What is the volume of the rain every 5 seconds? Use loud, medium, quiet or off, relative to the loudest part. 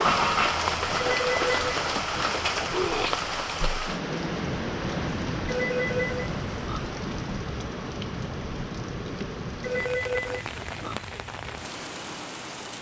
loud, medium, medium.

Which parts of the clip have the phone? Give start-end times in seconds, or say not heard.
0.9-2.4, 5.5-6.9, 9.6-11.1.